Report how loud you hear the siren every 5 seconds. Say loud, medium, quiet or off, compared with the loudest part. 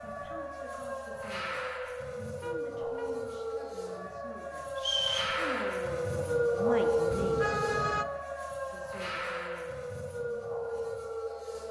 medium, loud, medium.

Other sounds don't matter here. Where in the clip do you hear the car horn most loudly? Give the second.
8 s.